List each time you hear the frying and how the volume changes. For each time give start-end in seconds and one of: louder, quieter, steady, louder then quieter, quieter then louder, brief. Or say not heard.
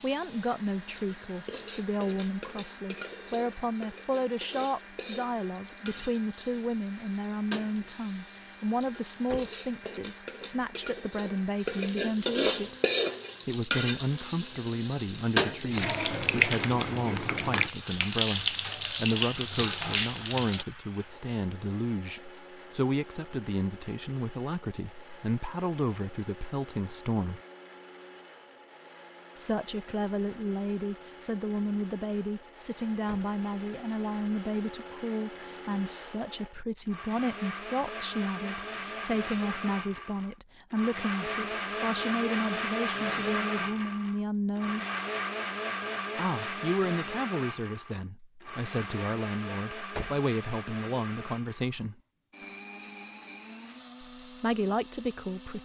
0.0-20.6 louder.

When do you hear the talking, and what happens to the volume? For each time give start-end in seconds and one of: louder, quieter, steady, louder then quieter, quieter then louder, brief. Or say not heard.
0.0-12.8 steady
13.4-27.4 steady
29.4-44.9 steady
46.1-52.0 quieter then louder
54.2-55.6 brief.